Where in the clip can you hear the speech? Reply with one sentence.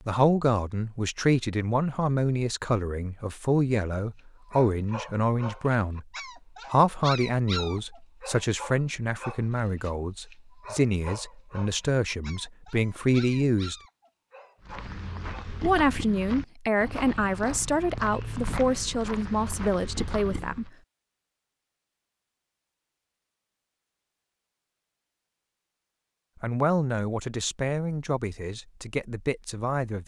You can hear the speech from 0.1 to 6.0 s, from 6.7 to 13.8 s, from 15.6 to 20.7 s and from 26.4 to 30.0 s.